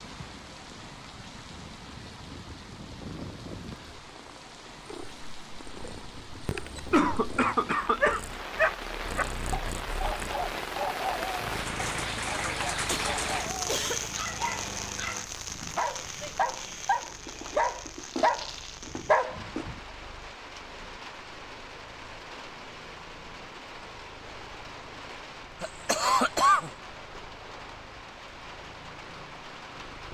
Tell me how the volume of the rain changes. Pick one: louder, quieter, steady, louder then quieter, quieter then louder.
louder then quieter.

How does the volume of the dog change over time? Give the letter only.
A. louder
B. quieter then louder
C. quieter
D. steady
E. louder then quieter
B.